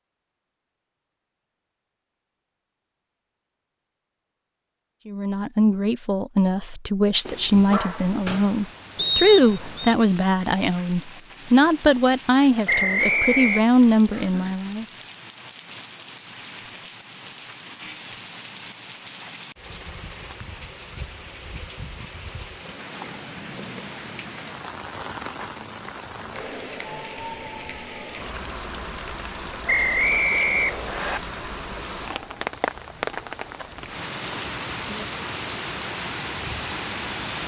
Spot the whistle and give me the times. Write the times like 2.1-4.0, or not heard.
8.9-9.9, 12.7-13.7, 29.6-31.2.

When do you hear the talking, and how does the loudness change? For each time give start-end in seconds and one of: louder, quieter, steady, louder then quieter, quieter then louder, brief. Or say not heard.
5.0-14.8 steady.